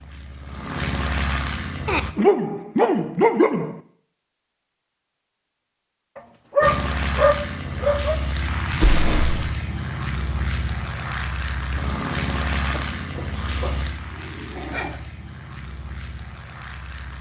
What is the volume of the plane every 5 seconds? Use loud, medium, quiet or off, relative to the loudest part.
loud, loud, loud, medium.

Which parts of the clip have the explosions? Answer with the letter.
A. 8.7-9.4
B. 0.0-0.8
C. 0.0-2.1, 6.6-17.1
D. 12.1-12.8
A.